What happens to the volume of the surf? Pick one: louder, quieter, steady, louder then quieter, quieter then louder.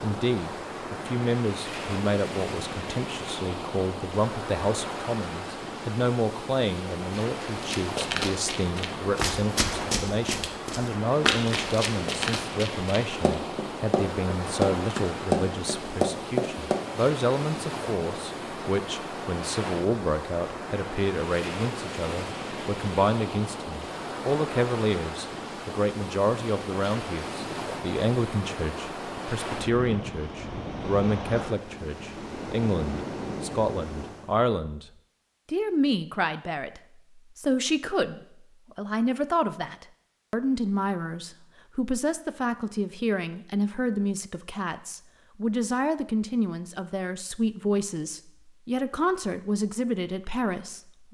steady.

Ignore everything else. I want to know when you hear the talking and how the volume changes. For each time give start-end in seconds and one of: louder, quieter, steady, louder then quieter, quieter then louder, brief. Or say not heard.
0.0-34.9 steady
35.5-51.0 steady.